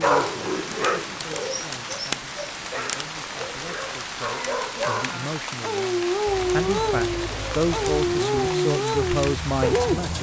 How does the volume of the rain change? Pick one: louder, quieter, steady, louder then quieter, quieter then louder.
steady.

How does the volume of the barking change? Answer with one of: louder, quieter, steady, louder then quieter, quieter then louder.
quieter then louder.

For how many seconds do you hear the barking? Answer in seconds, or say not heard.
10 s.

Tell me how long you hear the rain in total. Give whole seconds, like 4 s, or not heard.
10 s.